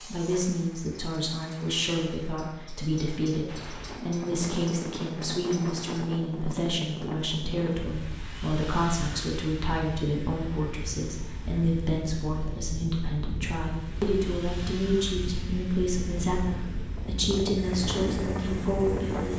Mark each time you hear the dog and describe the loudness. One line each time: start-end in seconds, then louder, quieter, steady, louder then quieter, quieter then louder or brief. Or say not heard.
not heard.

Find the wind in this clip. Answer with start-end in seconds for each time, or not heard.
3.5-19.3.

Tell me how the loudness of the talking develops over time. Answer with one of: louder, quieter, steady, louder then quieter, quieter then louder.
steady.